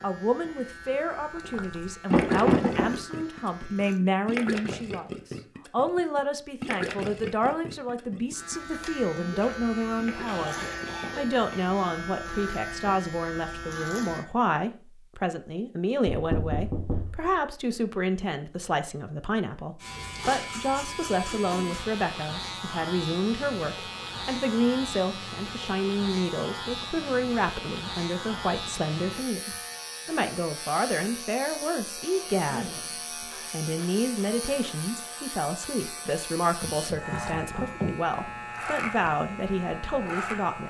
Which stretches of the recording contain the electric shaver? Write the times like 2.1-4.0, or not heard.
0.0-4.0, 8.3-14.2, 19.8-40.6.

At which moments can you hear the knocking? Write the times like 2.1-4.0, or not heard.
2.1-3.0, 16.1-17.4, 36.6-38.0.